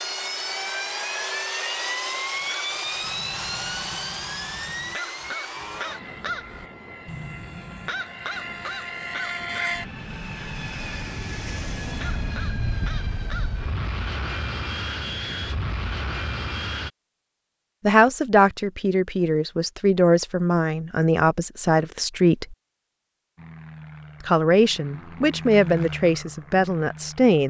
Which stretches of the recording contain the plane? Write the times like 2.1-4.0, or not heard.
0.0-16.9, 23.4-27.4.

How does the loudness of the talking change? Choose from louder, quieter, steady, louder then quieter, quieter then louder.
steady.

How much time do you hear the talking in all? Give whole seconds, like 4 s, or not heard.
8 s.